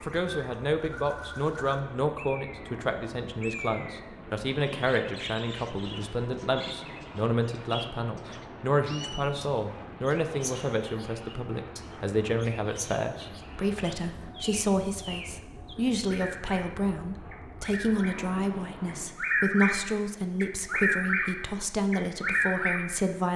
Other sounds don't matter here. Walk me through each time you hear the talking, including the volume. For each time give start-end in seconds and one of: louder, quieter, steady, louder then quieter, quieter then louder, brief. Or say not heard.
0.0-23.3 steady.